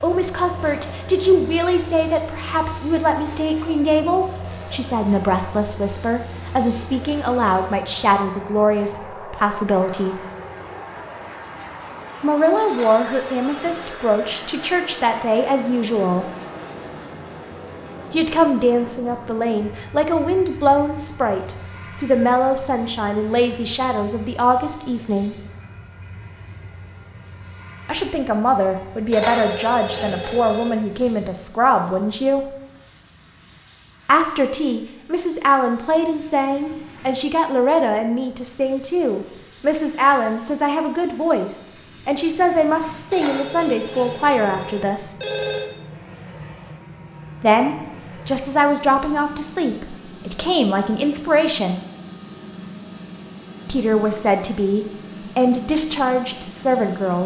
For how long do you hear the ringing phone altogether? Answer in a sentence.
You can hear the ringing phone for 6 seconds altogether.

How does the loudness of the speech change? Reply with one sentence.
The loudness of the speech stays about the same.